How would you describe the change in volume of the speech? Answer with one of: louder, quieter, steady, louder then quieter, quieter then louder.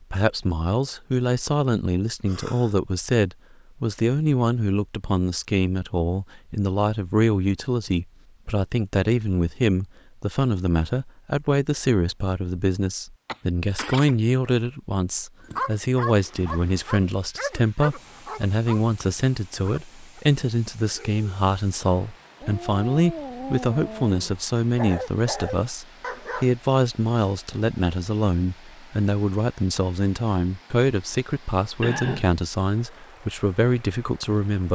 steady.